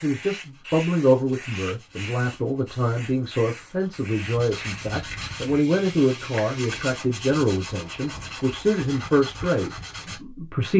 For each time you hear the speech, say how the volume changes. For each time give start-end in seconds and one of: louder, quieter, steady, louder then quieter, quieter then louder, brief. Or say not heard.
0.0-10.7 steady.